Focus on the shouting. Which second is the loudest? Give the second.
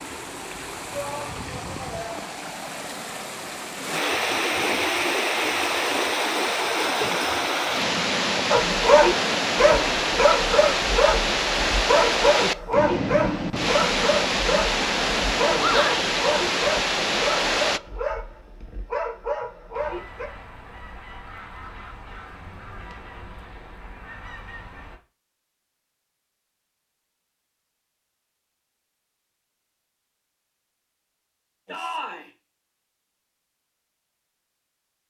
16 s.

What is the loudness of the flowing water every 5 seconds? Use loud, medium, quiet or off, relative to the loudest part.
medium, loud, loud, loud, off, off, off.